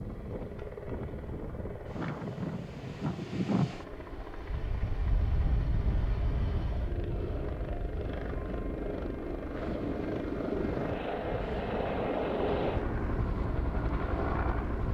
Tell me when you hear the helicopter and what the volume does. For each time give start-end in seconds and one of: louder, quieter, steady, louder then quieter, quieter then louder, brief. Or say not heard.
0.0-14.8 louder.